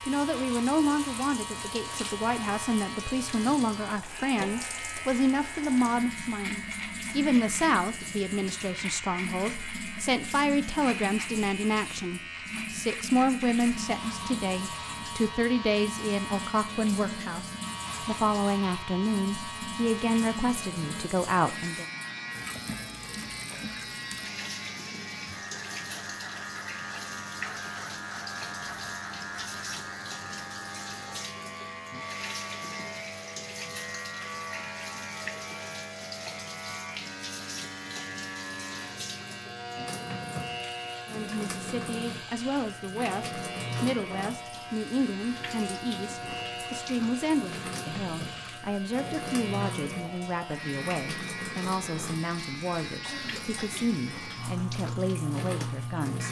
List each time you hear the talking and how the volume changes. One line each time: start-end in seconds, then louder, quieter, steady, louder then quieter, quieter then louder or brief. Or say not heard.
0.0-21.9 steady
41.0-56.2 steady.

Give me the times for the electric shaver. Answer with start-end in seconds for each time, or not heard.
0.0-56.2.